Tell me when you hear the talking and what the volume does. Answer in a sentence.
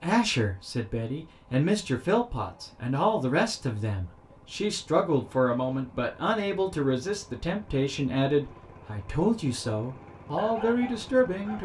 The talking can be heard from 0.0 to 11.5 s, at a steady volume.